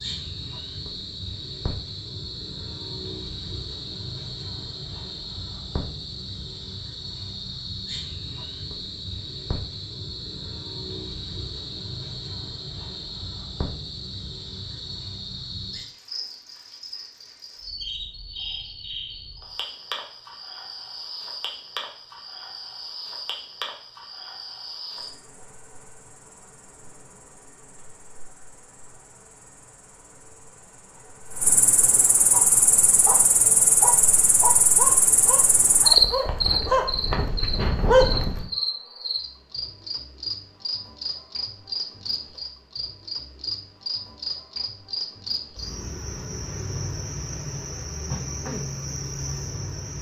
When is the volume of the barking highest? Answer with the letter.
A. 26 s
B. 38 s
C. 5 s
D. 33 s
B.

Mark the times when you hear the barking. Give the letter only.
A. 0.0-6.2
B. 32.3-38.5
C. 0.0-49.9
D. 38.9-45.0
B.